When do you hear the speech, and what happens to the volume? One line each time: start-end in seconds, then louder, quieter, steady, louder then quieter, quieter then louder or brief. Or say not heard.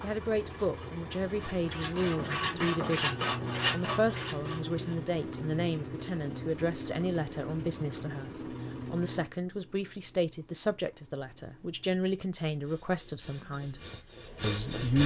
0.0-13.8 steady
14.4-15.0 brief.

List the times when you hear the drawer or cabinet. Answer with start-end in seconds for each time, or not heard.
not heard.